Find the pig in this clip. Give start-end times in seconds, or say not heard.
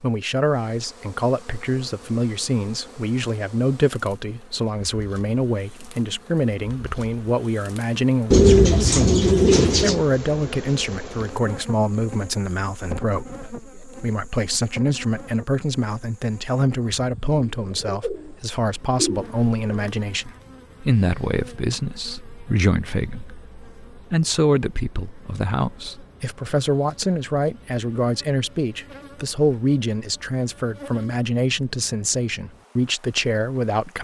not heard.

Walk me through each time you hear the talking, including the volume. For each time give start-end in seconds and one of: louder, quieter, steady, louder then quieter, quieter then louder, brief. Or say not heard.
0.0-33.9 steady.